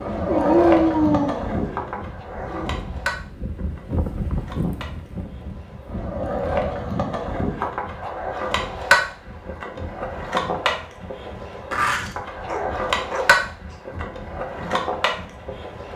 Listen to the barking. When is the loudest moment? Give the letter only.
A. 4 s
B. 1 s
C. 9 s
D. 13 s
B.